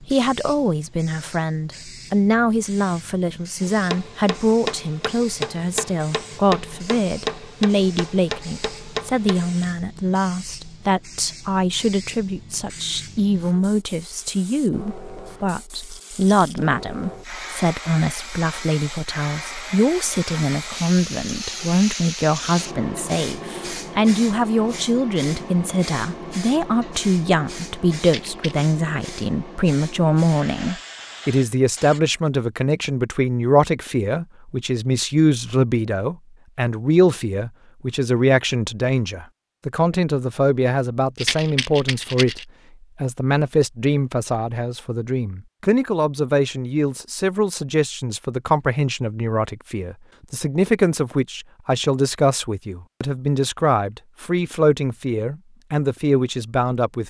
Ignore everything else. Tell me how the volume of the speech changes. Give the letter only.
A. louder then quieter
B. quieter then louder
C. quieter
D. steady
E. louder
D.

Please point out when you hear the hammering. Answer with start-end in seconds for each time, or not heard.
3.6-9.7.